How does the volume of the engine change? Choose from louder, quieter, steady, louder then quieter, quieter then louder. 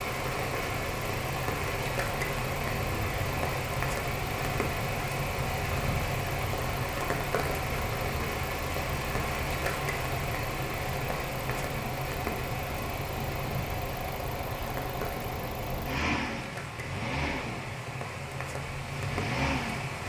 steady.